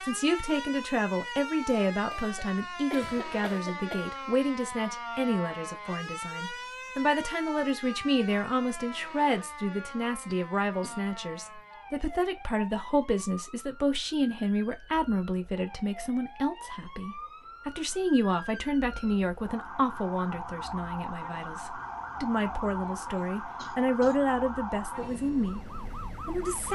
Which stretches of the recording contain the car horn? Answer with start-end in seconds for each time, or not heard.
not heard.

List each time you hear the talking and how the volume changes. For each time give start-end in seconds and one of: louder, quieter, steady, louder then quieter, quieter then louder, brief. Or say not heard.
0.0-26.7 steady.